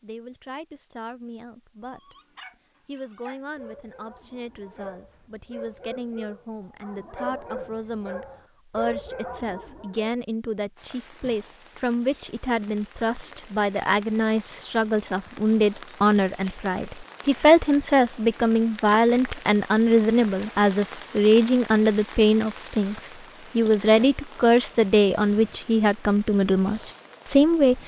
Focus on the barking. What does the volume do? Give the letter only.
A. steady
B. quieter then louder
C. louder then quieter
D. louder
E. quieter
D.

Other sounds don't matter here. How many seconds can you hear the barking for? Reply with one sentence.
The barking can be heard for 8 seconds in total.